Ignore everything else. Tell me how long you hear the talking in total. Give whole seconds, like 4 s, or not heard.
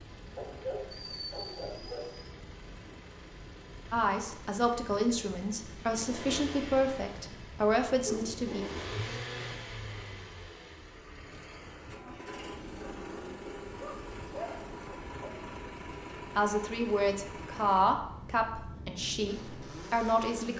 9 s.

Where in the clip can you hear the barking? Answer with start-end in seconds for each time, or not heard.
0.3-2.3, 8.0-8.8, 13.8-15.3.